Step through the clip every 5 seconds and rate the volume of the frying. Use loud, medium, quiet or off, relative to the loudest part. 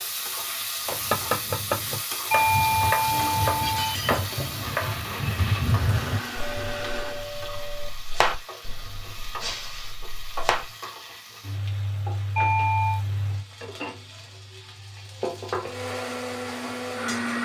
loud, medium, loud, loud.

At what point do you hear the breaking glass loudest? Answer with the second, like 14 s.
4 s.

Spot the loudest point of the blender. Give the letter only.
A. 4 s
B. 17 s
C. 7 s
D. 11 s
B.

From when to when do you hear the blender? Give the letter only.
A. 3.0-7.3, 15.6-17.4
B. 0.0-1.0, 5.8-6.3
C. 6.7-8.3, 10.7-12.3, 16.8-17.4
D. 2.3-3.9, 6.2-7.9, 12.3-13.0
A.